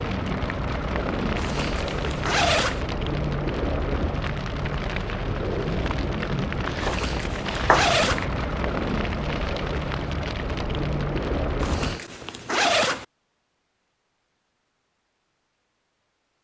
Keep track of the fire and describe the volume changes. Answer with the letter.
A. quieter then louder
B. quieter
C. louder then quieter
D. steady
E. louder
D.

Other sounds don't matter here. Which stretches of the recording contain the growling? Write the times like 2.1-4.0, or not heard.
not heard.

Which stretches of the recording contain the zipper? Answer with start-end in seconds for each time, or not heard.
1.4-2.8, 6.8-8.2, 11.6-13.1.